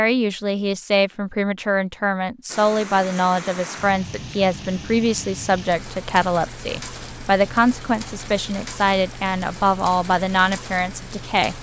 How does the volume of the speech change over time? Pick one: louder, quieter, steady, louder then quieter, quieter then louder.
steady.